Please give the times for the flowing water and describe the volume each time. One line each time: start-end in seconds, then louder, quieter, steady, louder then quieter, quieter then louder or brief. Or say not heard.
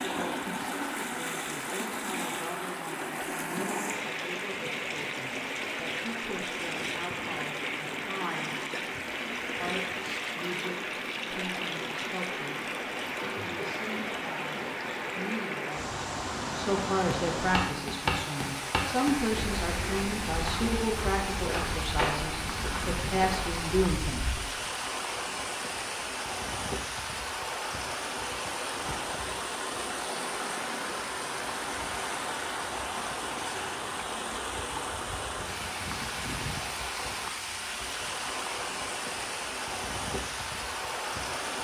0.0-41.5 steady.